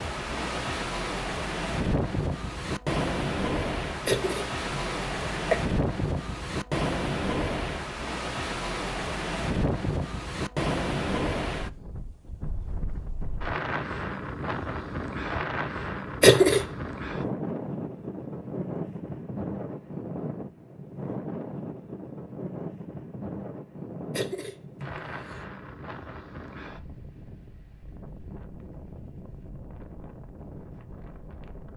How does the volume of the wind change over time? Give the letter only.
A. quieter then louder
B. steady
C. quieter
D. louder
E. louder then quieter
C.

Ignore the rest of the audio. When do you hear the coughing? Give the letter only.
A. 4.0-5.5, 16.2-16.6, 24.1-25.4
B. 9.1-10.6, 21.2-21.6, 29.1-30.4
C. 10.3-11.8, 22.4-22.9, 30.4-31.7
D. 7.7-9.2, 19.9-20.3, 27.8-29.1
A.